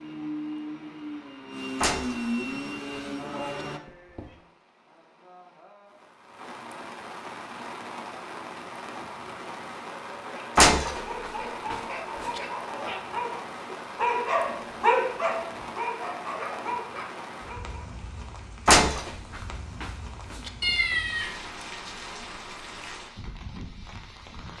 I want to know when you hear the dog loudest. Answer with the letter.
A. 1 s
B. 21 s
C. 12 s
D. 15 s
D.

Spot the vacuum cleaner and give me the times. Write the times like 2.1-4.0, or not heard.
0.0-3.8.